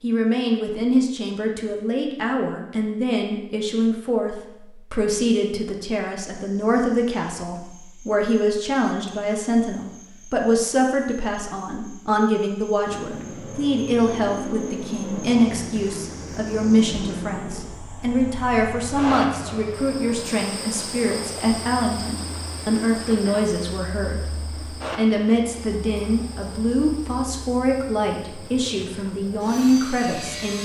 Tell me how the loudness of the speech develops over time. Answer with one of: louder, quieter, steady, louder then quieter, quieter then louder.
steady.